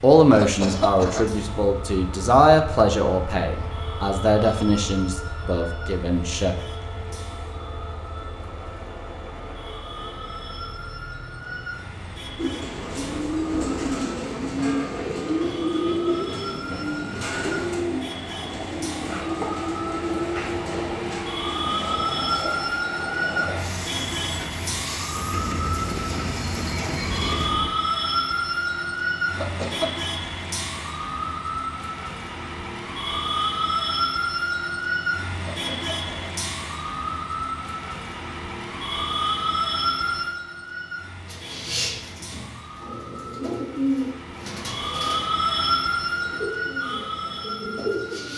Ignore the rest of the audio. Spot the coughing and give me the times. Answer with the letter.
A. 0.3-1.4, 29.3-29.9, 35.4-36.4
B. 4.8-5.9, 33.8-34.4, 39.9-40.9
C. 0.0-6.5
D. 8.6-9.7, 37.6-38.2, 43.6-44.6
A.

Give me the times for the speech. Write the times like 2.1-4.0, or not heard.
0.0-6.5.